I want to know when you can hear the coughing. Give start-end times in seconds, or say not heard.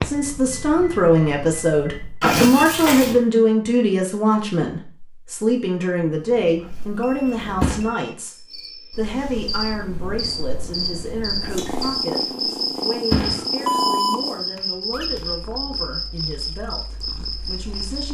not heard.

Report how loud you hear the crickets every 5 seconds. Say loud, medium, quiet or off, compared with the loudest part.
off, medium, loud, loud.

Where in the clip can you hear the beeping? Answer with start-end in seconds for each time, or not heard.
0.1-2.2, 7.0-8.2, 13.7-15.2.